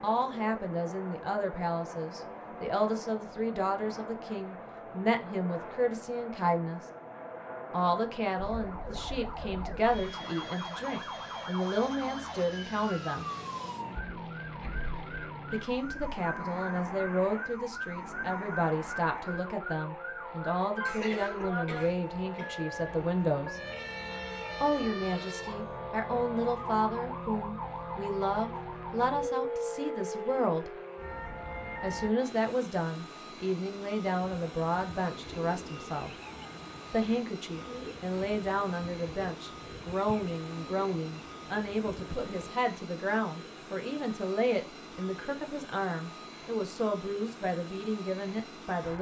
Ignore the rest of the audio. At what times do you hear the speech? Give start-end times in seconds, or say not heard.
0.0-6.8, 7.7-13.3, 15.5-23.6, 24.6-30.8, 31.8-36.1, 36.9-48.9.